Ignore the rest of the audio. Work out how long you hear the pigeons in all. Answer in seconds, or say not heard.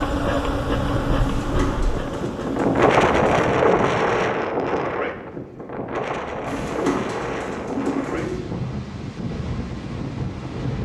4 s.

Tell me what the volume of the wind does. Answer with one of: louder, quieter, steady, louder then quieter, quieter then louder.
louder then quieter.